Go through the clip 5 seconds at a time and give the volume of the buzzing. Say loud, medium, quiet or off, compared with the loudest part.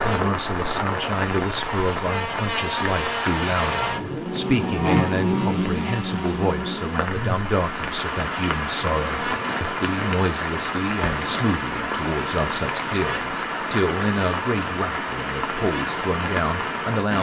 loud, loud, medium, medium.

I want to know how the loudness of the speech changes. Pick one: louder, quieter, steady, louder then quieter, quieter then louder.
steady.